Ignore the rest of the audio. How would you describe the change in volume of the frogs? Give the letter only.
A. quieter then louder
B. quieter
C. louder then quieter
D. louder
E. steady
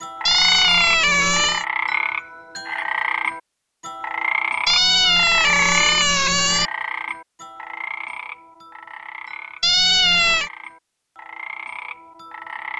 B.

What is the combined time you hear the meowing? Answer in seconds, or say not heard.
4 s.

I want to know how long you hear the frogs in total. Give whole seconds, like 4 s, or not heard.
13 s.